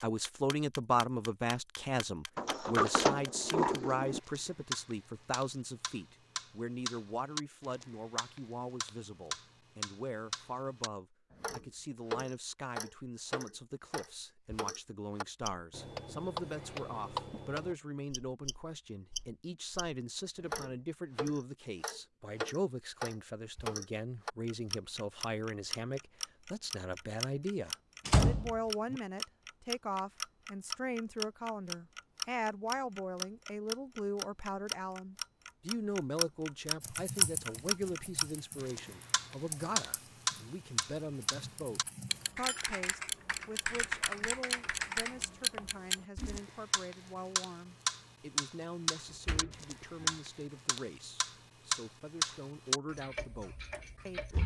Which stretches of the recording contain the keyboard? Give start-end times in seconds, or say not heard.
36.8-46.4.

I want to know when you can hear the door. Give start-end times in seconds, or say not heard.
2.4-4.2, 28.1-29.0, 49.2-50.1.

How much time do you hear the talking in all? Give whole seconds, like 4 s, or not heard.
54 s.